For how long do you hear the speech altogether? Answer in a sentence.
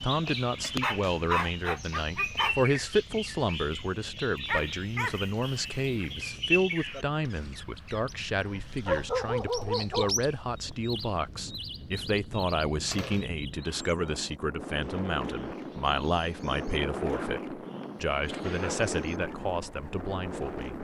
The speech can be heard for 21 seconds in total.